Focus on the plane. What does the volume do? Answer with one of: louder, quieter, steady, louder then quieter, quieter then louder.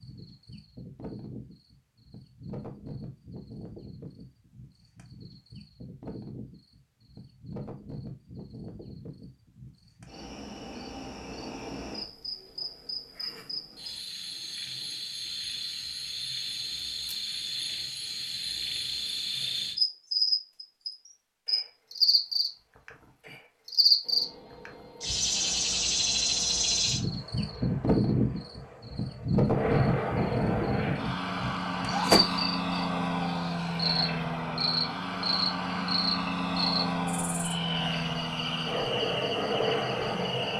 louder.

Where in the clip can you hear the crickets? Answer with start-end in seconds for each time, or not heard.
0.0-40.5.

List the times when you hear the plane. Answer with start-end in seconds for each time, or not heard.
24.0-40.5.